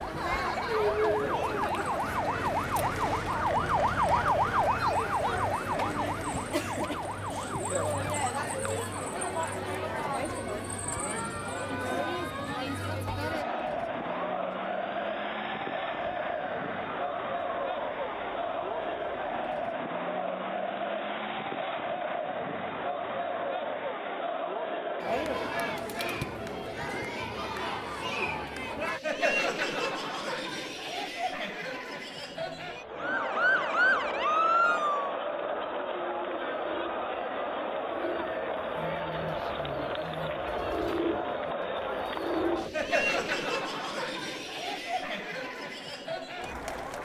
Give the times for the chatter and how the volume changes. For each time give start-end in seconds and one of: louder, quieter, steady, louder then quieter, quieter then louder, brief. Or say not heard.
0.0-46.9 steady.